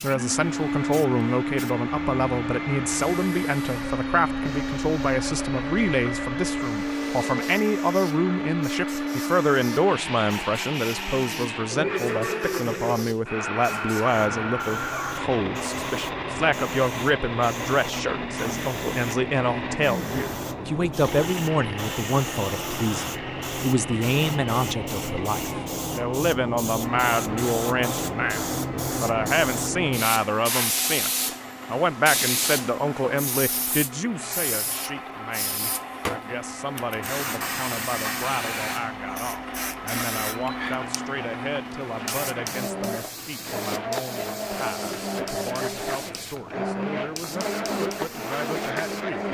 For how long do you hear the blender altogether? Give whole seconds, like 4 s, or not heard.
49 s.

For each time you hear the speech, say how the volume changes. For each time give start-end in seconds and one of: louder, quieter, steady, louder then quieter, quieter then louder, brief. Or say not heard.
0.0-49.2 quieter.